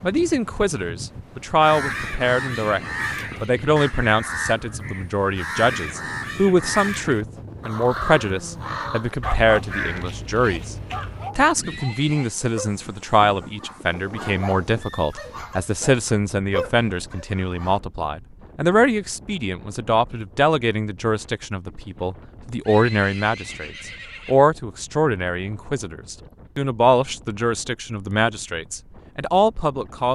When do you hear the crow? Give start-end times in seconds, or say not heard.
1.6-11.3.